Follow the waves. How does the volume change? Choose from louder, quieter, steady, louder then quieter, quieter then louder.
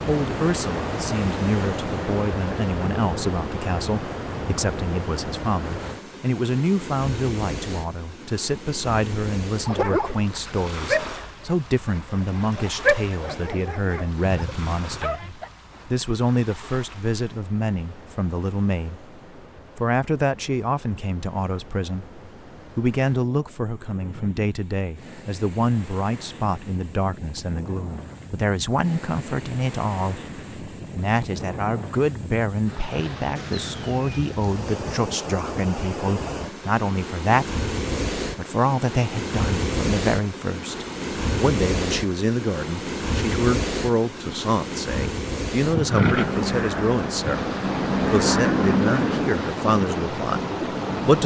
quieter then louder.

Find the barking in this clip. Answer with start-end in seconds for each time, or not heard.
9.7-15.5.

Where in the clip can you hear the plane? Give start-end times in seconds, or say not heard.
45.9-49.4.